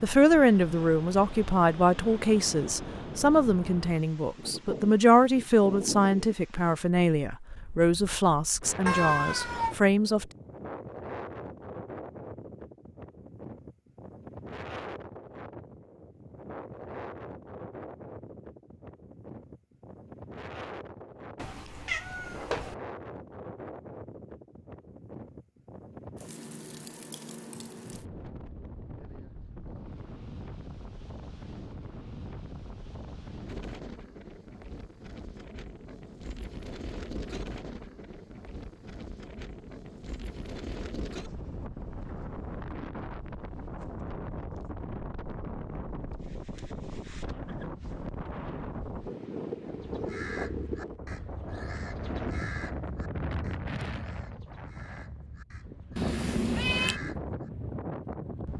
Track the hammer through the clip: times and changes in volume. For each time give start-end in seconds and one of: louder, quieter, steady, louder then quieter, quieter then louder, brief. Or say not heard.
not heard.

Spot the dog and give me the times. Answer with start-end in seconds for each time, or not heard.
not heard.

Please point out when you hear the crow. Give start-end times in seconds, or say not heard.
49.6-57.4.